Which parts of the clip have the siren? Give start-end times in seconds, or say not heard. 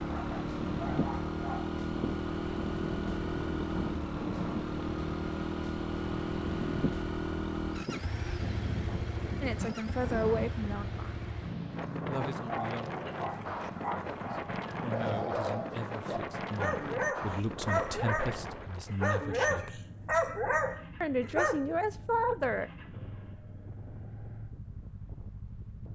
not heard.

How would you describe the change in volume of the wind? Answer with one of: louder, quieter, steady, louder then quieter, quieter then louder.
quieter.